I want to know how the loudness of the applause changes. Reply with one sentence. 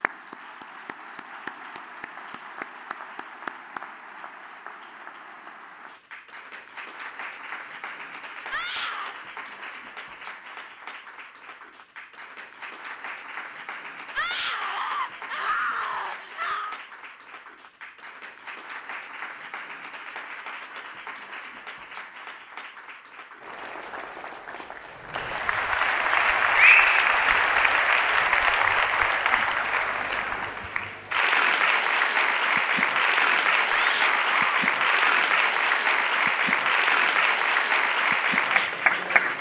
The volume of the applause goes up.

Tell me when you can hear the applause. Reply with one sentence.
You can hear the applause from 0.0 to 39.3 s.